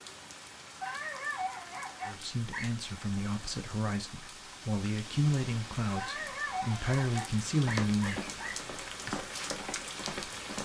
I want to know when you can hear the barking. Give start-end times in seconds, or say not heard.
0.8-2.7, 6.0-8.6.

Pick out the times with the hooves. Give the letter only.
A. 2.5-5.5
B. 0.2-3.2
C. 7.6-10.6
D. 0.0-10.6
C.